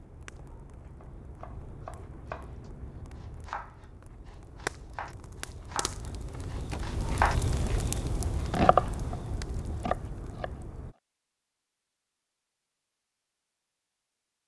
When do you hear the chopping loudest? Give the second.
9 s.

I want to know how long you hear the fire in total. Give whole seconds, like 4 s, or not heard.
11 s.